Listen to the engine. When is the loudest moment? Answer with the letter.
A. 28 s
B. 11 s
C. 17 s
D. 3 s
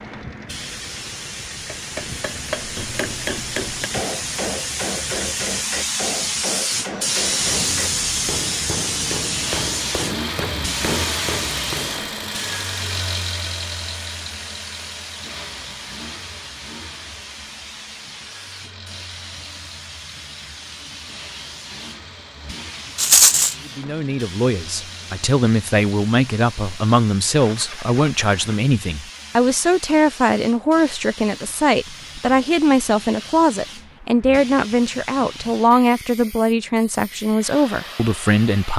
B.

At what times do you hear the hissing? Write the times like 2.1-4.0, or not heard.
0.0-38.7.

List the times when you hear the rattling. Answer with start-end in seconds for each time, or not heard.
22.9-23.6.